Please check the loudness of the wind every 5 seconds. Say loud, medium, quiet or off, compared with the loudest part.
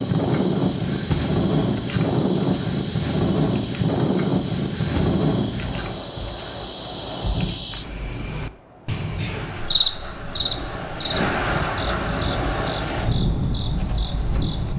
loud, medium, medium.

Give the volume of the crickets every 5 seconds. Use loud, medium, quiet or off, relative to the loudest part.
medium, loud, medium.